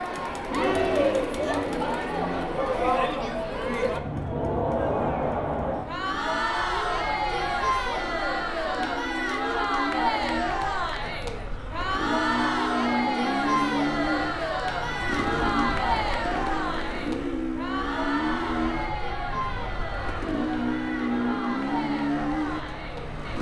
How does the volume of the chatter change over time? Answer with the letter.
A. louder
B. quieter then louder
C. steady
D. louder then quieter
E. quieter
E.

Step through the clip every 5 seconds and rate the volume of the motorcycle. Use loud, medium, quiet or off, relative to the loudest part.
medium, medium, loud, loud, loud.